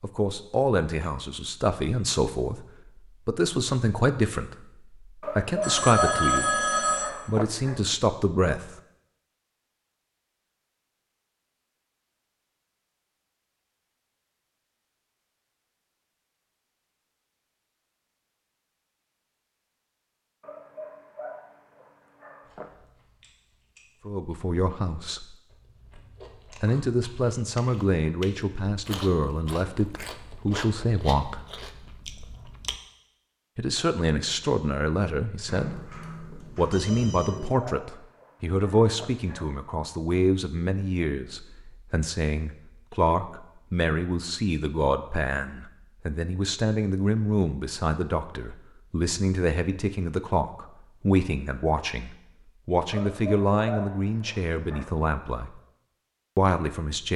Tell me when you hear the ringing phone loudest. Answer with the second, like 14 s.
6 s.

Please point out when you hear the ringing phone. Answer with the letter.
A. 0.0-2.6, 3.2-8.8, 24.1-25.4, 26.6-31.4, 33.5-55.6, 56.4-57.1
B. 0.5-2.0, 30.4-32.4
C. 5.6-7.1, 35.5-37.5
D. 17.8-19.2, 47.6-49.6
C.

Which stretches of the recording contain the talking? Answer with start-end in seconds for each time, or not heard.
0.0-2.6, 3.2-8.8, 24.1-25.4, 26.6-31.4, 33.5-55.6, 56.4-57.1.